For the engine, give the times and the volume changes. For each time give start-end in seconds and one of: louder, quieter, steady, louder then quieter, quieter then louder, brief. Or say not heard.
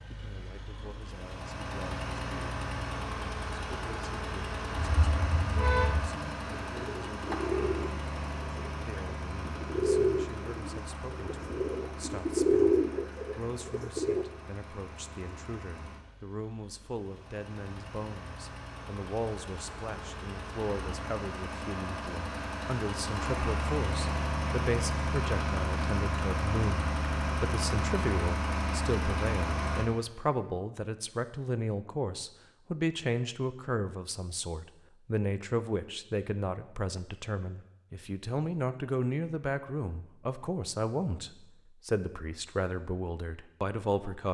0.0-29.9 quieter then louder.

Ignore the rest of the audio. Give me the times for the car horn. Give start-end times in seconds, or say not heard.
4.8-6.0.